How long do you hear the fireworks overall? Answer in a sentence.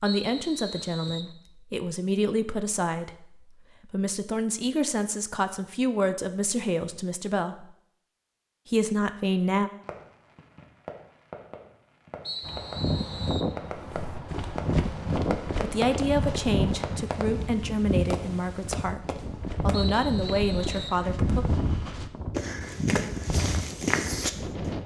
The fireworks can be heard for 10 seconds in total.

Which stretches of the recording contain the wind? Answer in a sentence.
You can hear the wind from 12.4 to 24.8 s.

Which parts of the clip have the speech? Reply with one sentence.
The speech can be heard from 0.0 to 7.7 s, from 8.7 to 9.7 s and from 15.6 to 21.4 s.